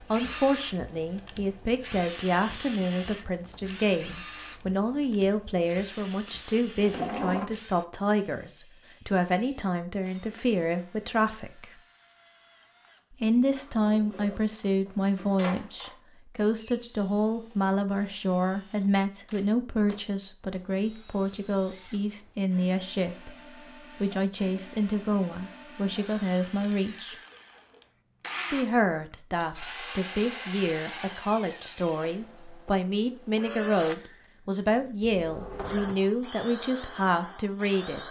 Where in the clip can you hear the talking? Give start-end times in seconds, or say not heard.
0.0-11.7, 13.1-23.4, 24.0-27.1, 28.5-38.0.